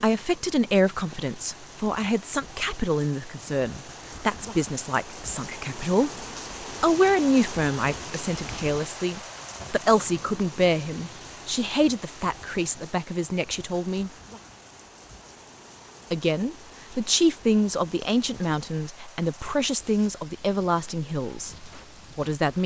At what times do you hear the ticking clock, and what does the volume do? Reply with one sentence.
You can't hear the ticking clock here.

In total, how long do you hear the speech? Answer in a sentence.
The speech can be heard for 20 seconds in total.